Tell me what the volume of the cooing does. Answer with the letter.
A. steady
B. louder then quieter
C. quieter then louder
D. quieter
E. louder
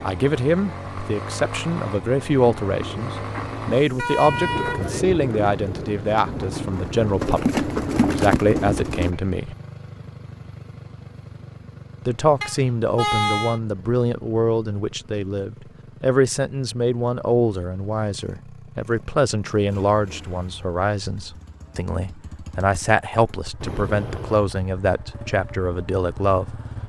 E.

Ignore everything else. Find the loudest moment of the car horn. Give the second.
13 s.